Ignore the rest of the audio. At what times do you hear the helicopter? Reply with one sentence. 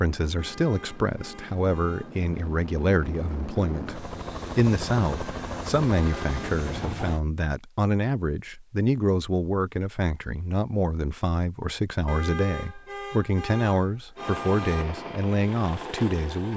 You can hear the helicopter from 0.0 to 7.2 s and from 14.2 to 16.5 s.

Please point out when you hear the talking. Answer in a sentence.
The talking can be heard from 0.0 to 16.5 s.